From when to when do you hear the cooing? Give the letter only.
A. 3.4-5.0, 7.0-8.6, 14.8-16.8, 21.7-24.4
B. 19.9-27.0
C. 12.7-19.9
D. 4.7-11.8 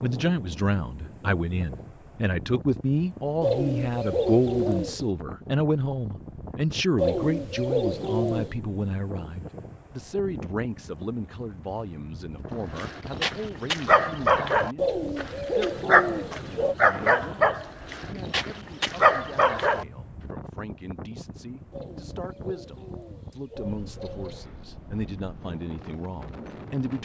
A.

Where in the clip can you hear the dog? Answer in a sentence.
You can hear the dog from 12.7 to 19.9 s.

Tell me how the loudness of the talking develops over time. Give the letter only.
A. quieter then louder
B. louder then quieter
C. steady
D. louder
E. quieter
A.